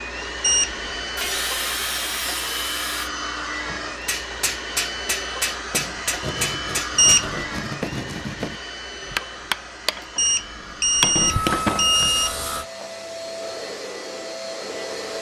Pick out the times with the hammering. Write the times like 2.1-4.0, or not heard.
4.0-11.9.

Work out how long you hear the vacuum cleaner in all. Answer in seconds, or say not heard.
15 s.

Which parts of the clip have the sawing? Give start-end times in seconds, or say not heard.
1.1-3.1, 5.7-8.6, 11.2-12.7.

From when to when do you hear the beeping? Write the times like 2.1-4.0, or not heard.
0.4-0.8, 7.0-7.4, 10.2-12.4.